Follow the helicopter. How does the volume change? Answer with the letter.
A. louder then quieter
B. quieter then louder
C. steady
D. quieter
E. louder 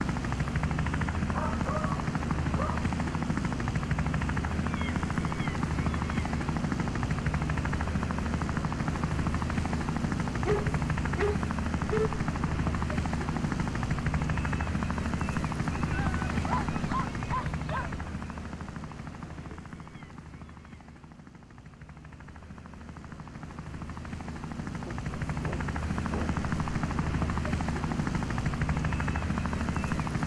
B.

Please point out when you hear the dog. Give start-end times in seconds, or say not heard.
1.3-2.9, 10.4-12.2, 15.9-17.9, 24.9-26.4.